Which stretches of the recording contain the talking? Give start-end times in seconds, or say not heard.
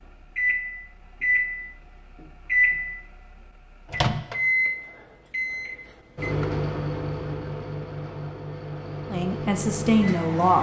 9.1-10.5.